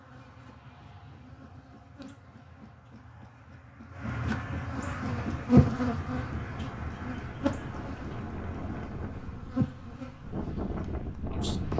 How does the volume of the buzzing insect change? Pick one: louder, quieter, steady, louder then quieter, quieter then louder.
louder then quieter.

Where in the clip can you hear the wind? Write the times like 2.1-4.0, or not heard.
5.2-11.7.